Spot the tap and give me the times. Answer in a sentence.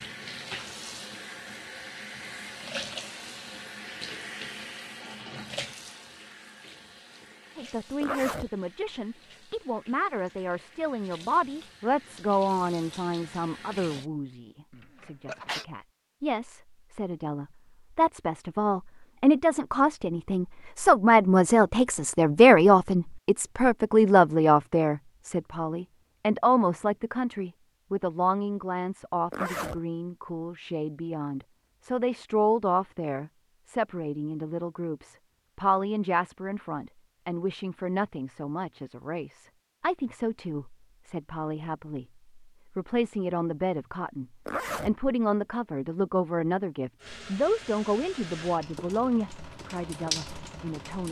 You can hear the tap from 0.0 to 14.1 s and from 47.0 to 51.0 s.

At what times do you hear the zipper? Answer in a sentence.
The zipper can be heard from 8.0 to 8.5 s, from 29.3 to 29.8 s and from 44.5 to 45.0 s.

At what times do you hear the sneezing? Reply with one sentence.
You can hear the sneezing from 14.7 to 15.7 s.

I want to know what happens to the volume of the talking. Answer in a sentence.
The loudness of the talking goes up, then down.